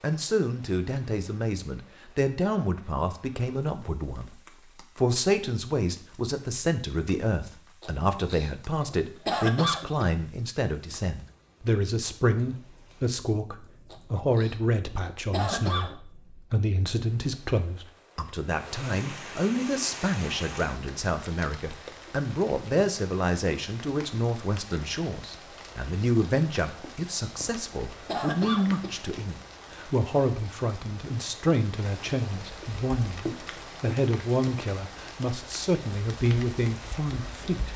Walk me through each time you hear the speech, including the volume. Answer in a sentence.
The speech can be heard from 0.0 to 37.7 s, at a steady volume.